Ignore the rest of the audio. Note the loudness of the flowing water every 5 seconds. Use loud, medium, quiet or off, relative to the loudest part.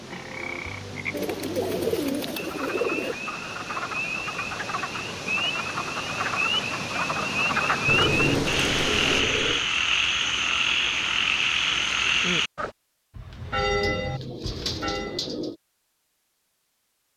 medium, loud, off, off.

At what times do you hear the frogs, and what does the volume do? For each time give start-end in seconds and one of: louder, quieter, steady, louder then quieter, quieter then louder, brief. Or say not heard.
0.0-12.7 louder.